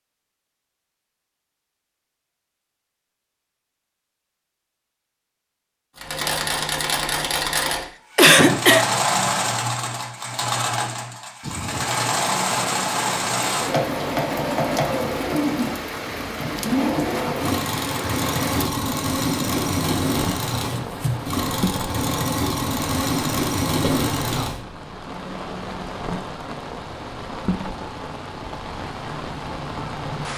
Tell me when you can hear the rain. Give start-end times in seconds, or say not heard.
11.4-30.3.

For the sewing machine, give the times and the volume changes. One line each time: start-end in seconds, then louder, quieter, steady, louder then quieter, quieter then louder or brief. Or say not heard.
6.0-24.6 steady.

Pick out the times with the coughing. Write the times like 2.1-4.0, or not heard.
8.2-8.8, 23.8-24.6.